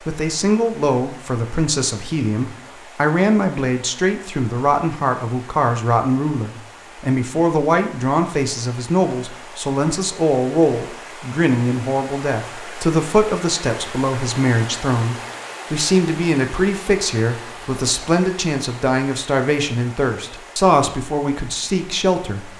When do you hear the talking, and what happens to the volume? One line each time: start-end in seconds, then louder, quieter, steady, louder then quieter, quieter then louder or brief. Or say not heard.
0.0-22.5 steady.